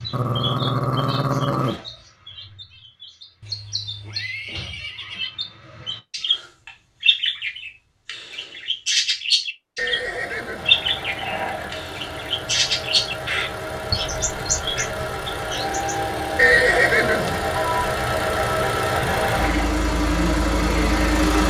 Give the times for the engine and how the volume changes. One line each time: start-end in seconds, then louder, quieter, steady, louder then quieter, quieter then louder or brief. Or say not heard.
9.8-21.4 louder.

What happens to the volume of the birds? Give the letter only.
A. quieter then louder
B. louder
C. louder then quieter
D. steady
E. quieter
B.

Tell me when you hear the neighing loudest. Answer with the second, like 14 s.
17 s.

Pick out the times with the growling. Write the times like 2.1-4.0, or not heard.
0.1-1.8, 10.6-11.9, 18.9-19.7.